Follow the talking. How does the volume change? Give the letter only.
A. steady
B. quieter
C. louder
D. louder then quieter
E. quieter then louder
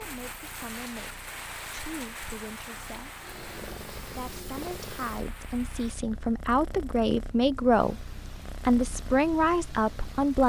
C.